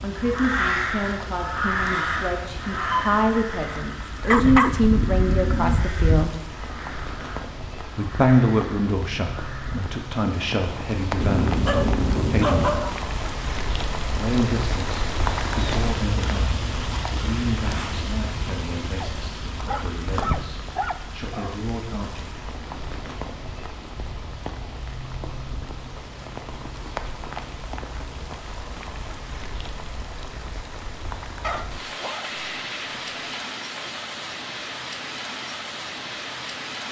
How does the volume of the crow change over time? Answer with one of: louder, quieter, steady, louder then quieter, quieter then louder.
quieter.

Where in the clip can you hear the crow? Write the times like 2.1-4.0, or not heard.
0.1-10.0.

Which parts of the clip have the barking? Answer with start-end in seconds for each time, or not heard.
4.3-6.3, 11.2-12.9, 19.0-21.6, 31.4-33.5.